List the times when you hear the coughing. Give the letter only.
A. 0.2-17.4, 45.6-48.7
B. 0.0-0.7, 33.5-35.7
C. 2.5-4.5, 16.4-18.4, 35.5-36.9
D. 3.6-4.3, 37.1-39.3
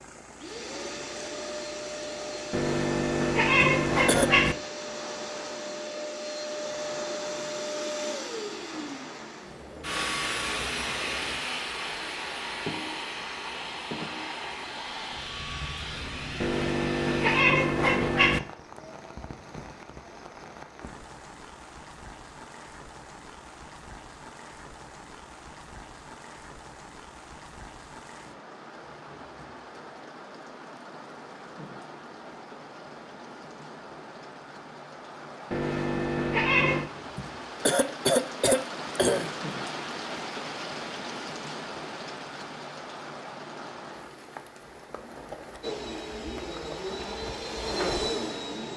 D.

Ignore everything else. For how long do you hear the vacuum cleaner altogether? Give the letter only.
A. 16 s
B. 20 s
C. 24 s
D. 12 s
B.